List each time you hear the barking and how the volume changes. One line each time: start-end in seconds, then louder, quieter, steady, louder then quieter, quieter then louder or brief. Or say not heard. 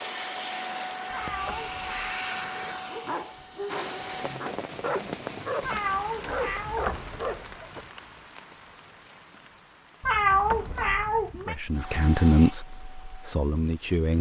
2.7-7.8 quieter then louder.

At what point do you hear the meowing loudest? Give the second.
10 s.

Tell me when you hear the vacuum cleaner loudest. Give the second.
2 s.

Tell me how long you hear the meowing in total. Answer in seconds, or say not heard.
4 s.